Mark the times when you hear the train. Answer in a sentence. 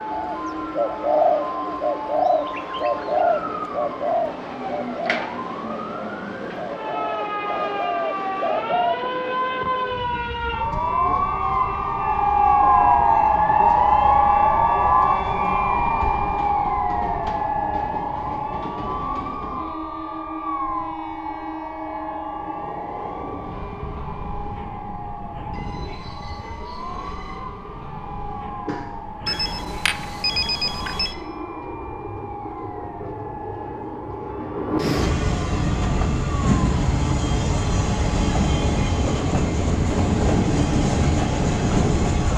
The train can be heard from 0.0 to 42.3 s.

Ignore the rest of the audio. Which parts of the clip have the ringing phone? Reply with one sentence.
You can hear the ringing phone from 29.2 to 31.1 s.